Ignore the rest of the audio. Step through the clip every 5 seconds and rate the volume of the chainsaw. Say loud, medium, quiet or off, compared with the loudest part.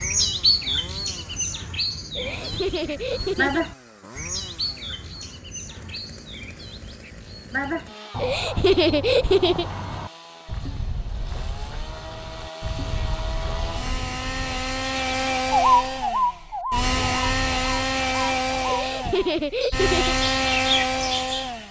quiet, quiet, medium, loud, loud.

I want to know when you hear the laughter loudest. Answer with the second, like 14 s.
9 s.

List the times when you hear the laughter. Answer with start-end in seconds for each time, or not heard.
2.1-3.6, 8.2-9.7, 18.6-20.1.